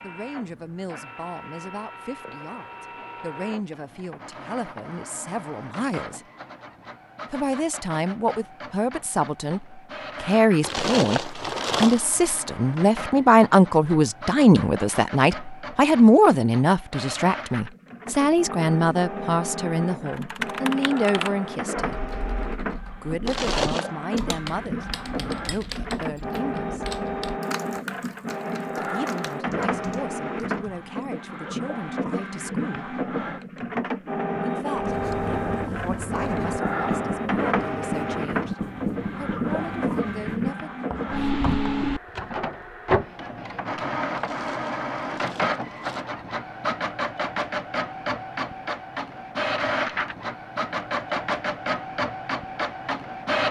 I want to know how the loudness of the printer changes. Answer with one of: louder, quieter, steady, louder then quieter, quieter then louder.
louder.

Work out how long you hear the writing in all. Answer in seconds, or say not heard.
7 s.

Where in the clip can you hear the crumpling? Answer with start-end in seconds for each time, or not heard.
10.6-12.1, 23.2-23.9, 44.1-46.0.